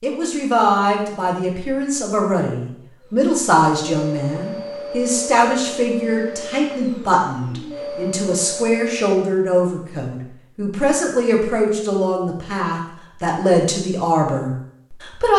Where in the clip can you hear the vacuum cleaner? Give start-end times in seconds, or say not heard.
3.0-9.1.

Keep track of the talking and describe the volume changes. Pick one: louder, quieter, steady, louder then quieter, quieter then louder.
steady.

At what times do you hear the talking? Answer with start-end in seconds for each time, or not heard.
0.0-15.3.